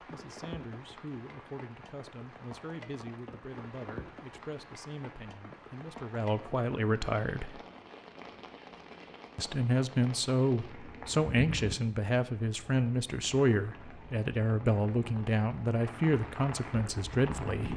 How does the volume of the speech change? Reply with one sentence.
The volume of the speech goes up.